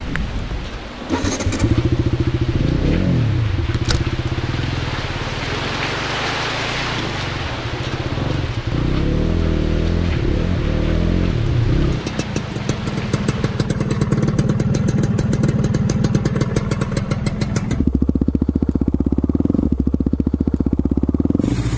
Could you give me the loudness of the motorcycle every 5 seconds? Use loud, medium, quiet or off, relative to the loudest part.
loud, medium, loud, loud, loud.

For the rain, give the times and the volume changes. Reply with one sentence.
The rain can be heard from 0.0 to 13.8 s, getting louder then quieter.